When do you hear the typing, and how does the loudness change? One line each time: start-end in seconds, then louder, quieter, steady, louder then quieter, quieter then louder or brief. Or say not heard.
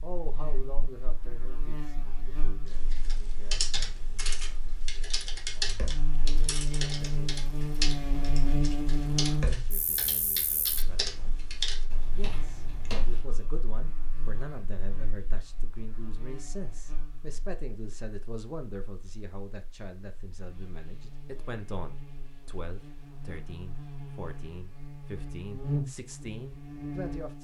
2.7-13.2 steady.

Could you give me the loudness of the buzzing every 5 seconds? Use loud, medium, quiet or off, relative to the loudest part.
quiet, loud, quiet, quiet, quiet, loud.